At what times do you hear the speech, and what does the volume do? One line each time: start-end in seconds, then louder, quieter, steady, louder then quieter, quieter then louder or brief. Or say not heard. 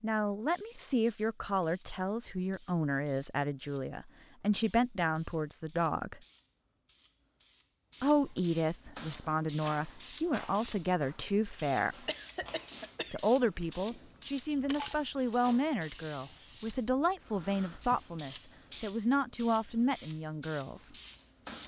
0.0-6.2 steady
8.0-12.1 steady
13.1-20.9 steady.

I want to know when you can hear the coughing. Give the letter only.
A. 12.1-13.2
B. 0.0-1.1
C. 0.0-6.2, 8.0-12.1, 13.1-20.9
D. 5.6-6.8
A.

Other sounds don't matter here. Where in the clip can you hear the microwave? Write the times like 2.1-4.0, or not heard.
not heard.